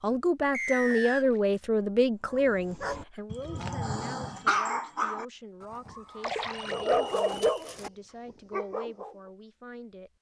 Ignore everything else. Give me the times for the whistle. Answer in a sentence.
The whistle can be heard from 0.5 to 1.2 s and from 6.5 to 7.5 s.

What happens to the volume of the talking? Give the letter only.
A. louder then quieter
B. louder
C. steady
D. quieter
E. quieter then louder
D.